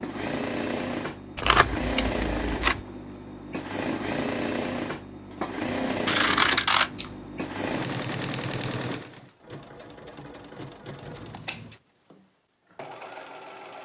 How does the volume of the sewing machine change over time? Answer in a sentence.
The loudness of the sewing machine goes down.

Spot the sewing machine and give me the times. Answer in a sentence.
The sewing machine can be heard from 0.0 to 13.8 s.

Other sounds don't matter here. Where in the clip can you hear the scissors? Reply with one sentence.
The scissors can be heard from 1.4 to 2.8 s, from 6.0 to 7.1 s and from 11.1 to 11.8 s.